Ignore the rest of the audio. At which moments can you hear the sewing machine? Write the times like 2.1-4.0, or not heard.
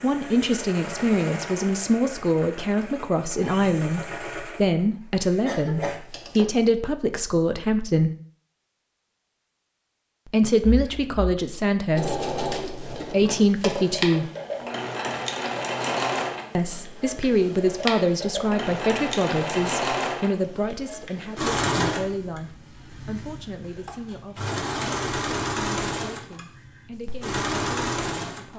0.0-6.5, 11.9-28.5.